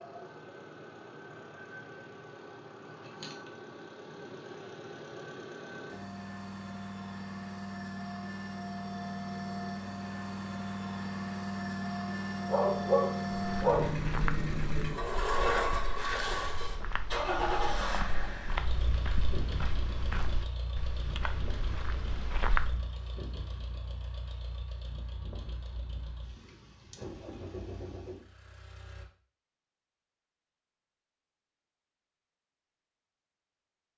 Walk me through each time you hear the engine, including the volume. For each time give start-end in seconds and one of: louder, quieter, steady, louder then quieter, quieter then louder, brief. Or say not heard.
0.0-29.1 louder then quieter.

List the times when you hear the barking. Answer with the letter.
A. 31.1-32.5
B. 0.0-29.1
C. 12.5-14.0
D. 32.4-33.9
C.